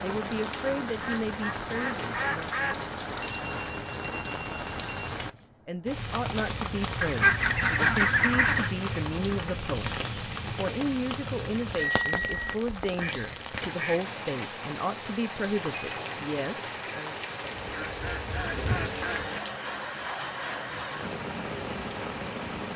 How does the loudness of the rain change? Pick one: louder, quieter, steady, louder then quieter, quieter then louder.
steady.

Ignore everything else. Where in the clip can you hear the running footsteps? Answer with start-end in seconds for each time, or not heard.
not heard.